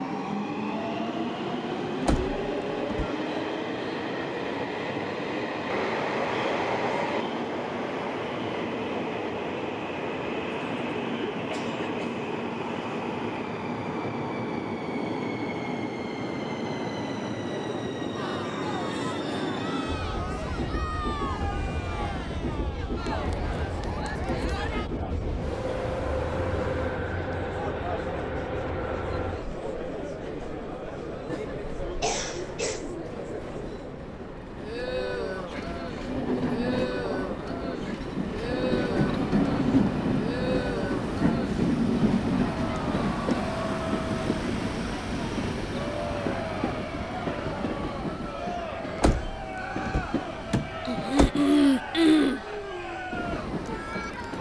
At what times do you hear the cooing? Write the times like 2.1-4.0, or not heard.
not heard.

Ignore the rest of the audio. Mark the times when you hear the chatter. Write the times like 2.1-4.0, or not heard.
18.1-54.3.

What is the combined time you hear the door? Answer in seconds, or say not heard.
3 s.